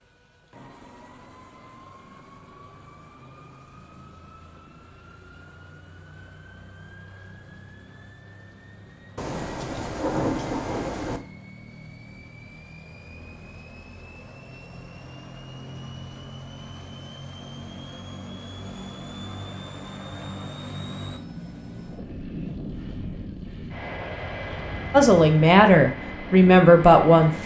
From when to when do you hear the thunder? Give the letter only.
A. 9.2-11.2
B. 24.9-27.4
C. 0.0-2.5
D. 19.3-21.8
A.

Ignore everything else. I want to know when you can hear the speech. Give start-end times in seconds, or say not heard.
24.9-27.4.